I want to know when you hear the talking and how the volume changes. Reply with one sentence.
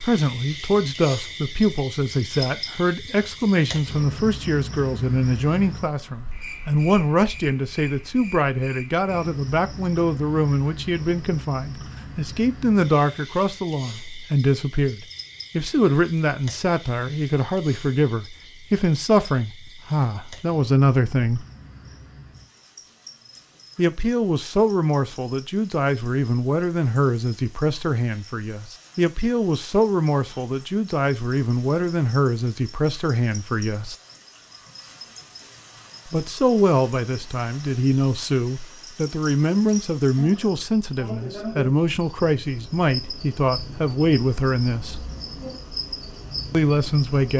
You can hear the talking from 0.0 to 21.4 s, at a steady volume; from 23.8 to 34.0 s, at a steady volume; from 36.1 to 45.0 s, at a steady volume; and briefly from 46.5 to 47.3 s.